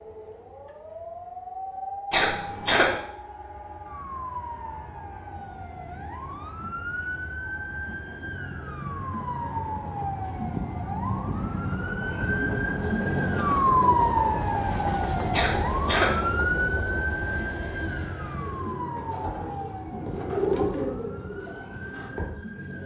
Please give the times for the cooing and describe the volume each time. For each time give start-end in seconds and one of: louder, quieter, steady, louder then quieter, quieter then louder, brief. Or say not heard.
18.3-22.8 louder then quieter.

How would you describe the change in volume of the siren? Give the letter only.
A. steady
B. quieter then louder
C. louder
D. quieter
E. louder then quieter
E.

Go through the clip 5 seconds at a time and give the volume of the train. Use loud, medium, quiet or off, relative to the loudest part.
quiet, quiet, loud, loud, off.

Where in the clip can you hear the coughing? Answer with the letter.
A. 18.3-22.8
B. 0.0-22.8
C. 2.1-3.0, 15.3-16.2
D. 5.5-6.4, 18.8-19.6
C.